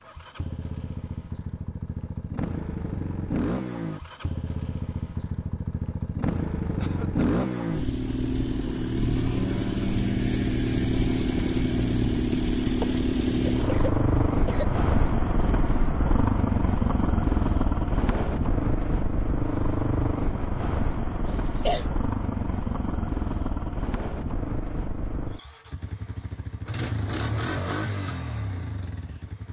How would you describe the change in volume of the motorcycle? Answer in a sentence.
The loudness of the motorcycle goes up, then down.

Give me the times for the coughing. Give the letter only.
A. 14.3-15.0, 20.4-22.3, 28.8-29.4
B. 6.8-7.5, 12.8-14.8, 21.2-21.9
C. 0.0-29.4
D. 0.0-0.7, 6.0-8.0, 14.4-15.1
B.